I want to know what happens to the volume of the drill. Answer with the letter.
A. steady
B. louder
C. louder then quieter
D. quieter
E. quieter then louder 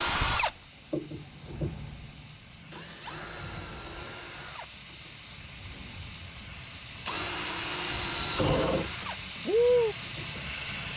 E.